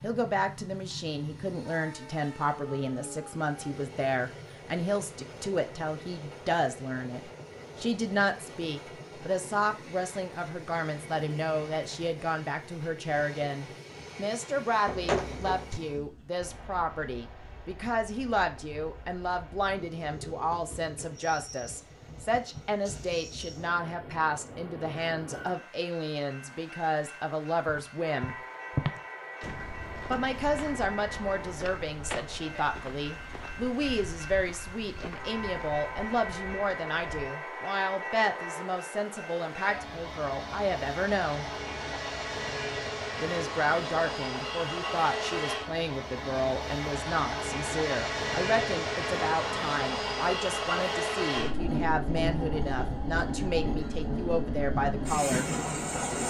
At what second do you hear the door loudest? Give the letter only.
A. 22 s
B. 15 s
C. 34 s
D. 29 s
B.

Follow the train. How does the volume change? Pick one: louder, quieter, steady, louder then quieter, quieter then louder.
louder.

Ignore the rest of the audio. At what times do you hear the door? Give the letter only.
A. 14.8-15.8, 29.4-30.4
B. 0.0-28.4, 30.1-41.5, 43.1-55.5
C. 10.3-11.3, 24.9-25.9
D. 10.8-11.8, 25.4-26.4
A.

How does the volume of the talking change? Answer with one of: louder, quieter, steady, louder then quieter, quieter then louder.
steady.